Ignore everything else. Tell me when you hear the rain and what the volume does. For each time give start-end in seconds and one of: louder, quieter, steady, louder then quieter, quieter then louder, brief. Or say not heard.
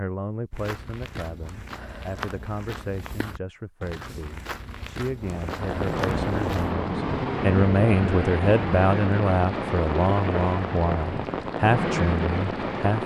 5.2-13.0 steady.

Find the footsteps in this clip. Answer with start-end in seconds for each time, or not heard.
0.5-6.8.